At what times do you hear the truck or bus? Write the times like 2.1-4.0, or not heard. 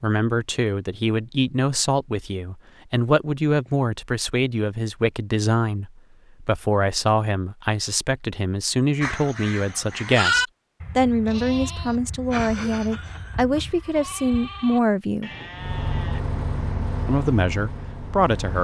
15.5-18.5.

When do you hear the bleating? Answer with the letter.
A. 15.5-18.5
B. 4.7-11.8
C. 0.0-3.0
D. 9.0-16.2
D.